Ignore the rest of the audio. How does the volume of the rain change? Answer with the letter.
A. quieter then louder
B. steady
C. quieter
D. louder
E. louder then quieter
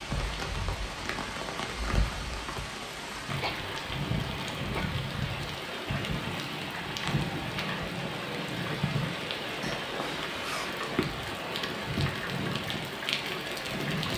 B.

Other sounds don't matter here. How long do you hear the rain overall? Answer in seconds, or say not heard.
14 s.